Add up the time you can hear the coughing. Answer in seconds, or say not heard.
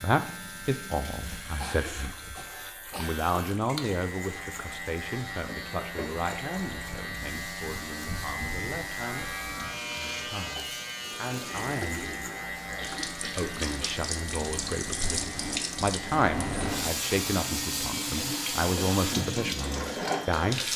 3 s.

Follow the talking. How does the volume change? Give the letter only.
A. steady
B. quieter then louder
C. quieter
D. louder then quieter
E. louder
B.